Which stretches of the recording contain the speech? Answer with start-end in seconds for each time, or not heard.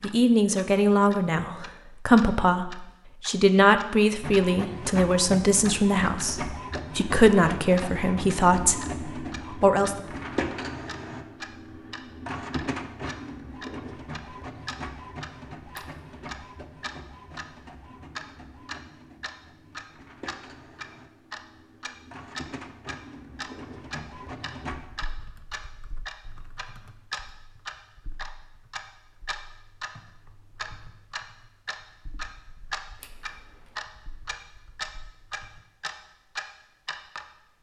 0.0-8.8, 9.5-9.9.